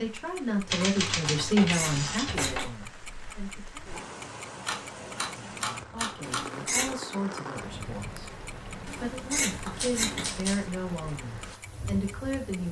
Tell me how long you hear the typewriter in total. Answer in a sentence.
You can hear the typewriter for 5 seconds altogether.